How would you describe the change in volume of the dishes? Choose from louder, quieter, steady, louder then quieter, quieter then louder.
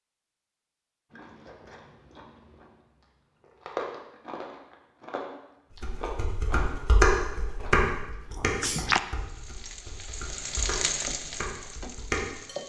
quieter then louder.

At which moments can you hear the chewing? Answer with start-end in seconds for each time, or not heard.
1.1-9.0.